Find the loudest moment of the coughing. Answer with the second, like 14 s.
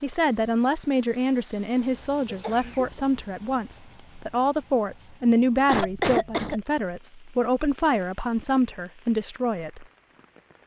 6 s.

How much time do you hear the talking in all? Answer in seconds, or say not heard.
10 s.